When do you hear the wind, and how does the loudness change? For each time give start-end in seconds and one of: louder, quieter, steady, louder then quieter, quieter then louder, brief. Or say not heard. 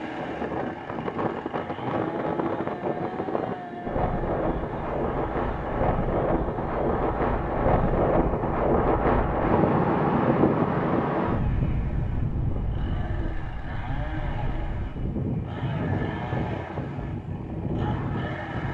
0.0-18.6 louder then quieter.